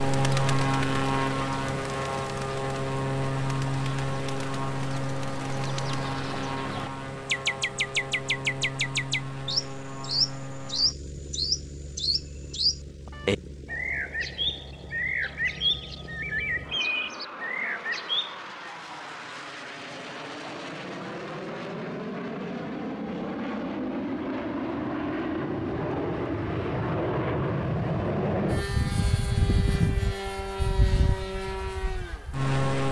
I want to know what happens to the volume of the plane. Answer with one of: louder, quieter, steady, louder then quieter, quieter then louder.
quieter then louder.